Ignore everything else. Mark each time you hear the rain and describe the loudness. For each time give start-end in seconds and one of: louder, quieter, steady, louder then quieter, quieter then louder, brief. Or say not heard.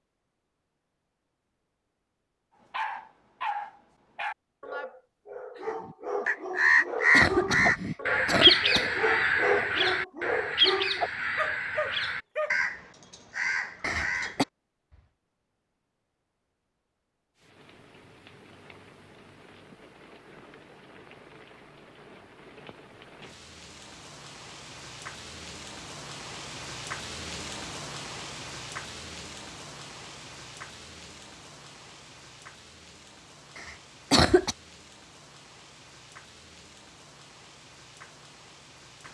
17.4-39.0 louder then quieter.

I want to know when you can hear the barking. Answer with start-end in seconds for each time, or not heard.
2.7-12.6.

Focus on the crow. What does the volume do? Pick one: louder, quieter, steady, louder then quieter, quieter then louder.
quieter.